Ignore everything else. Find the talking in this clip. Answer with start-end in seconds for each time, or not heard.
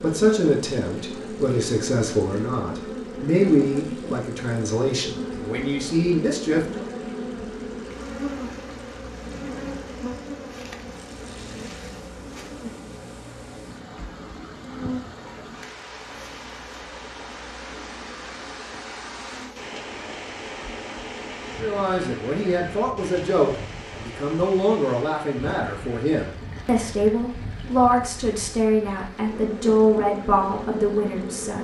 0.0-6.8, 21.6-31.5.